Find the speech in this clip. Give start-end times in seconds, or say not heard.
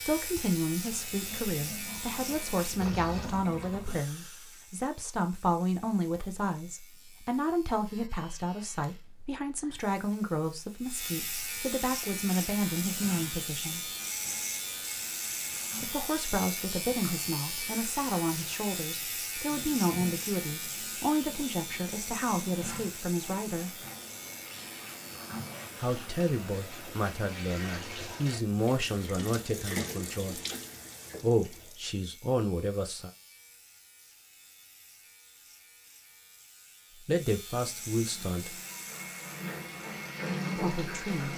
0.1-13.9, 15.8-23.8, 25.8-30.4, 31.2-33.1, 37.0-38.5, 40.5-41.3.